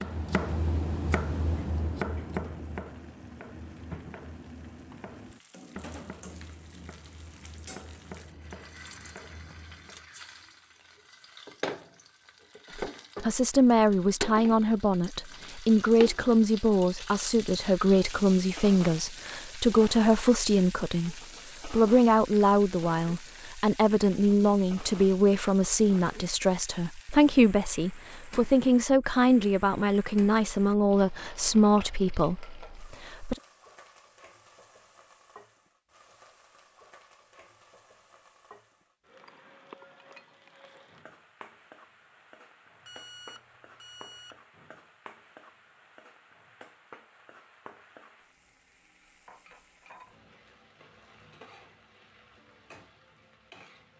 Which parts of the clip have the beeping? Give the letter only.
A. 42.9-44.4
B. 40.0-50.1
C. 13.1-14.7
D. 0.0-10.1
A.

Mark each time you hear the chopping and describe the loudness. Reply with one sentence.
You can hear the chopping from 0.0 to 10.1 s, getting quieter.